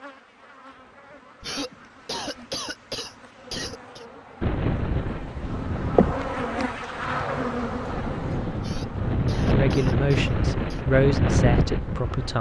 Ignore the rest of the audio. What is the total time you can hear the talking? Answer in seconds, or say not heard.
3 s.